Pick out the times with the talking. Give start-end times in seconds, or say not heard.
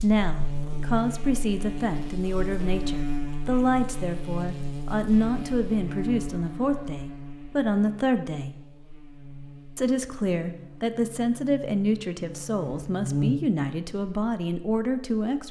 0.0-8.6, 9.8-15.4.